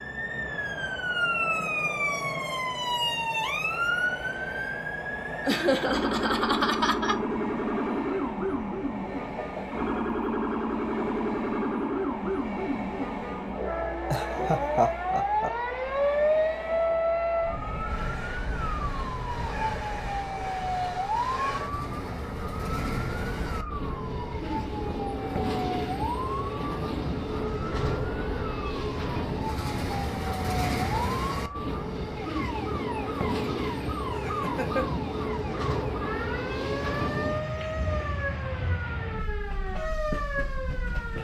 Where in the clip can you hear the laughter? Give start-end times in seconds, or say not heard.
5.5-7.2, 14.1-15.5, 34.1-34.9.